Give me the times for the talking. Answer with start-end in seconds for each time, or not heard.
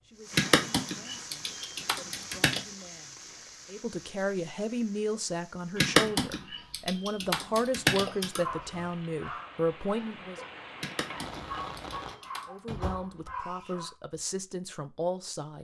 0.0-10.4, 12.4-15.5.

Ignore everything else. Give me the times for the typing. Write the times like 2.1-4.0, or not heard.
0.3-2.6, 5.8-8.4, 10.8-12.4.